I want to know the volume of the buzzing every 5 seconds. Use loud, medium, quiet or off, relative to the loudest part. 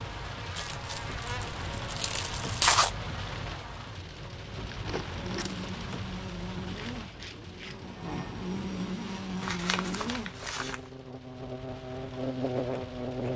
medium, loud, loud.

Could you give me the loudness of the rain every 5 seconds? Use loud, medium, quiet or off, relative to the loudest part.
loud, loud, medium.